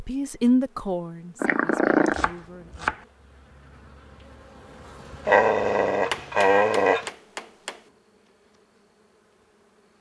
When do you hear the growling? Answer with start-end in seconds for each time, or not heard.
1.4-2.2, 5.2-7.1.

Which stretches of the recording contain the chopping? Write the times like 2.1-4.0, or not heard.
2.1-3.0, 6.1-7.8.